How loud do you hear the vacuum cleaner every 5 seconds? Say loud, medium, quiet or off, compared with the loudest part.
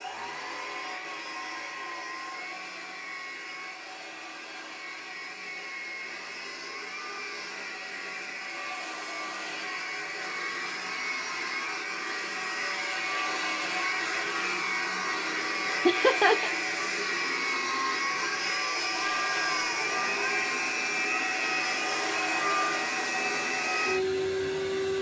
medium, medium, loud, loud, loud.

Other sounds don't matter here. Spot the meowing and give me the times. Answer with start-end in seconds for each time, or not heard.
18.0-20.8.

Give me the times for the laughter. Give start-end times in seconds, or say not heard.
15.8-16.5.